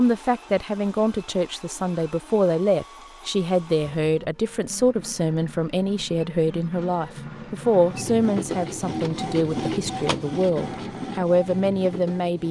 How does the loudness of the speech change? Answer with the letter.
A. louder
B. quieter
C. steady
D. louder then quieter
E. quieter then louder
C.